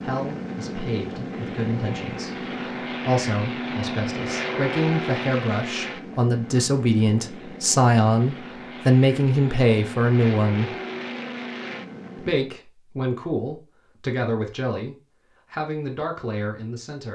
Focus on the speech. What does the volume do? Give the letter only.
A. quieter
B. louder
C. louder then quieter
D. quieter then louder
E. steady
C.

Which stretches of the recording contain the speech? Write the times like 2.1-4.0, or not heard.
0.0-10.8, 12.2-17.1.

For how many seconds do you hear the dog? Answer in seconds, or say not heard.
not heard.